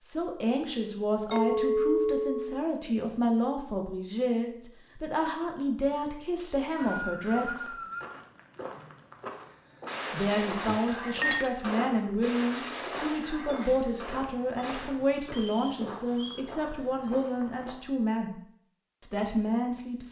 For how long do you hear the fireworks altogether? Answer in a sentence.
You can hear the fireworks for 5 seconds altogether.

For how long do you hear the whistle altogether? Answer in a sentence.
You can hear the whistle for 3 seconds altogether.